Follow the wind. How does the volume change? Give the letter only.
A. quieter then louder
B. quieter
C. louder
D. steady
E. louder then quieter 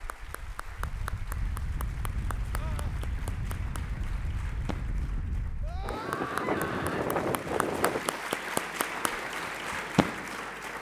E.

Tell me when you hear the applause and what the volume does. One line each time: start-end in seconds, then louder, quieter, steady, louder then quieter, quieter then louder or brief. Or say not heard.
0.0-10.7 louder.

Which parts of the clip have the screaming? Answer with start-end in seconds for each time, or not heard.
2.5-3.0, 5.6-7.1.